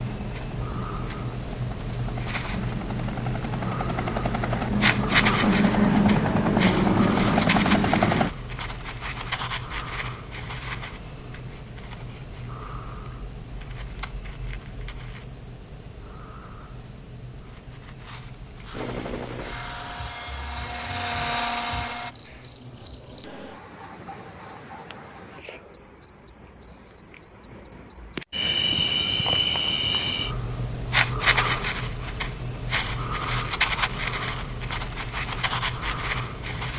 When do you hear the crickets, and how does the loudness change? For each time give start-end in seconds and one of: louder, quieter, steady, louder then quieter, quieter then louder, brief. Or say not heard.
0.0-36.7 quieter then louder.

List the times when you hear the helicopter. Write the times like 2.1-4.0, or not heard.
0.0-8.3, 18.7-22.1.